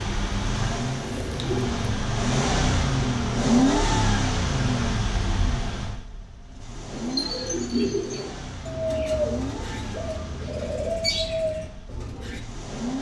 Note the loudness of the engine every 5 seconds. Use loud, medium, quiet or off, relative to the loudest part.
loud, medium, quiet.